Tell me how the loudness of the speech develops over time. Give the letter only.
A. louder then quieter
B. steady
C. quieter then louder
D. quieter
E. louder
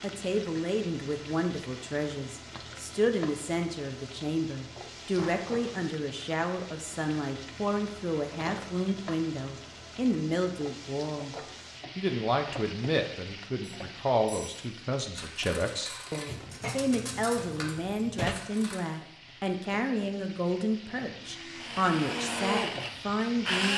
B.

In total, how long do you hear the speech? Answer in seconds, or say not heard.
23 s.